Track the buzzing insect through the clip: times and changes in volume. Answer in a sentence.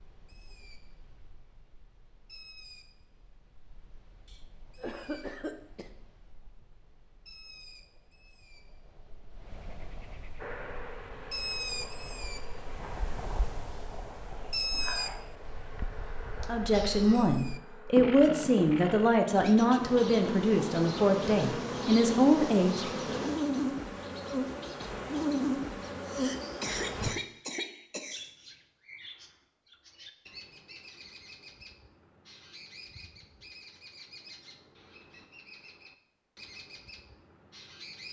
You can hear the buzzing insect from 10.3 to 27.1 s, getting louder.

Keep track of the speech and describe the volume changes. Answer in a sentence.
The loudness of the speech stays about the same.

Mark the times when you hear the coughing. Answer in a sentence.
You can hear the coughing from 4.2 to 5.9 s, from 15.4 to 17.3 s and from 26.1 to 28.2 s.